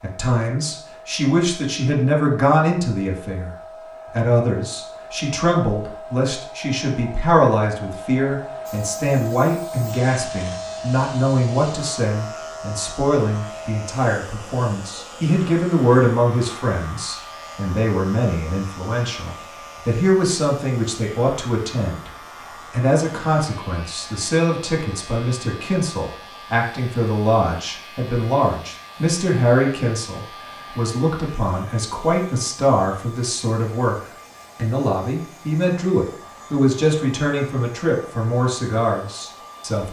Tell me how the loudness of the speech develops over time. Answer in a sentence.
The loudness of the speech stays about the same.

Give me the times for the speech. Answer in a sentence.
The speech can be heard from 0.0 to 22.1 s and from 22.7 to 39.8 s.